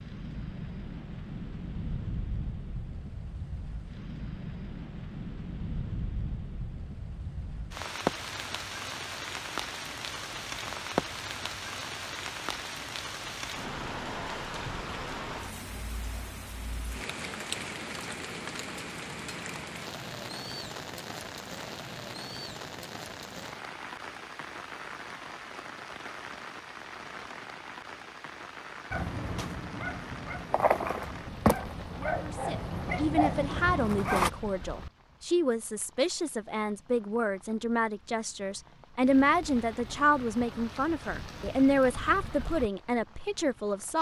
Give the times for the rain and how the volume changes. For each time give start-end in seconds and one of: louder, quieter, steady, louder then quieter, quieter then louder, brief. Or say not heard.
0.0-43.9 quieter.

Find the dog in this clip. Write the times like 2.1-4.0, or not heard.
28.9-34.3.